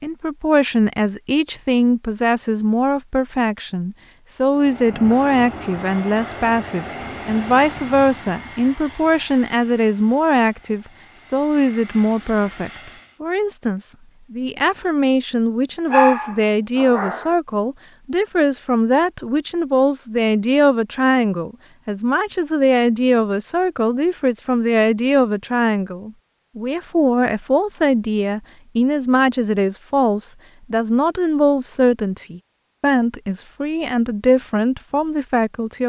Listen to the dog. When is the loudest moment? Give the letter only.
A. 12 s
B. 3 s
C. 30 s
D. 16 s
D.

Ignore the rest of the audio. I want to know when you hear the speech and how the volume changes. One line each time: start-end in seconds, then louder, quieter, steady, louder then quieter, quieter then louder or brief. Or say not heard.
0.0-35.8 steady.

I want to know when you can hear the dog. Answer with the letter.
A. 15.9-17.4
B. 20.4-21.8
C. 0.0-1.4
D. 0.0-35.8
A.